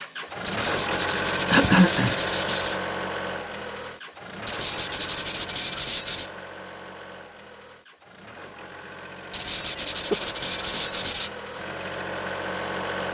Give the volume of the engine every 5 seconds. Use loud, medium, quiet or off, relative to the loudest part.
loud, medium, loud.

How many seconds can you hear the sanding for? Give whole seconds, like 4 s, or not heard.
6 s.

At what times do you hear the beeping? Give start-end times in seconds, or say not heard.
not heard.